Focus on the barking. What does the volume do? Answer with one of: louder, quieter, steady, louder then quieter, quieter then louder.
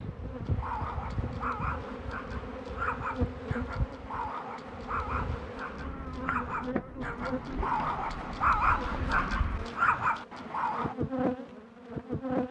louder.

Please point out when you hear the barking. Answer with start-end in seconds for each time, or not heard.
0.5-10.9.